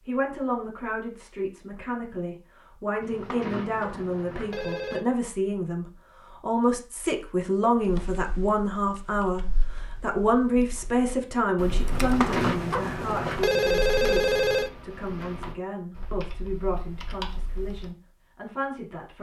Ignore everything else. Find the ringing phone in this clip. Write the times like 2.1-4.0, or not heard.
3.0-5.0, 11.9-14.7.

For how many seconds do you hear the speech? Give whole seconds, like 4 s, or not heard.
19 s.